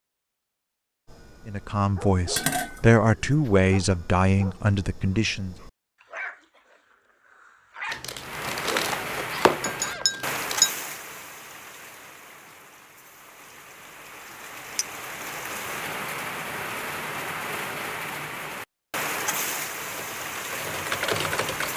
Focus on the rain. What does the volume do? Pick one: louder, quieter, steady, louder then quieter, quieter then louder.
quieter then louder.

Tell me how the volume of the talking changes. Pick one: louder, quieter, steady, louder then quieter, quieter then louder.
louder then quieter.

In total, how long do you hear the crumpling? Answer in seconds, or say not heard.
3 s.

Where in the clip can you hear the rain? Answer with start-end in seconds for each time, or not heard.
8.2-21.7.